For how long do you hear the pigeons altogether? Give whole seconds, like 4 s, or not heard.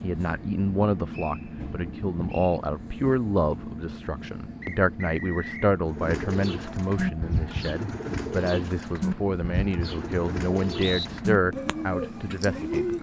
7 s.